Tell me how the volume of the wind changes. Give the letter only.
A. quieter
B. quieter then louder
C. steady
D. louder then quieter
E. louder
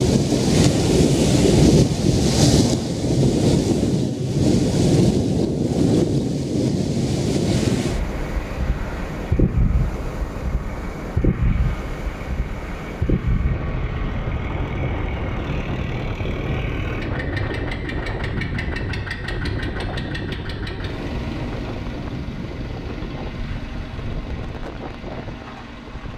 A.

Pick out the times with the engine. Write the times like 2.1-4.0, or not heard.
7.4-26.1.